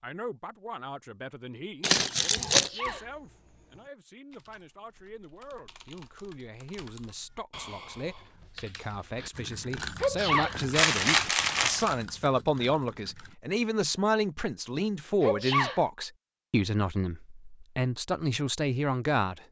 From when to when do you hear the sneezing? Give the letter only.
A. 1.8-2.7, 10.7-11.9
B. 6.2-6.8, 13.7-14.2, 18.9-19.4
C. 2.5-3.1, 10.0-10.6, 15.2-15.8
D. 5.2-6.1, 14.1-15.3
C.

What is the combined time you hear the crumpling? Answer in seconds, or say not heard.
2 s.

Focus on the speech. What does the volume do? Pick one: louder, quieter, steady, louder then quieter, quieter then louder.
louder.